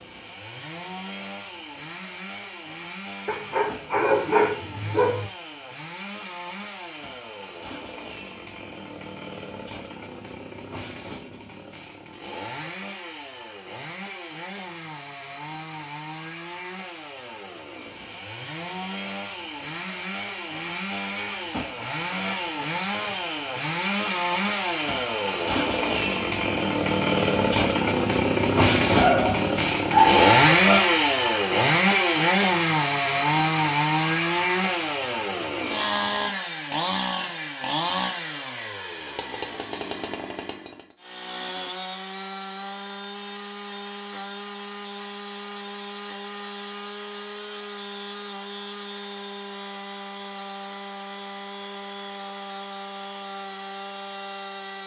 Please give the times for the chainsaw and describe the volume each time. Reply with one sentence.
The chainsaw can be heard from 0.0 to 54.8 s, getting louder then quieter.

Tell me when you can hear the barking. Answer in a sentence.
The barking can be heard from 3.2 to 5.3 s and from 28.9 to 30.9 s.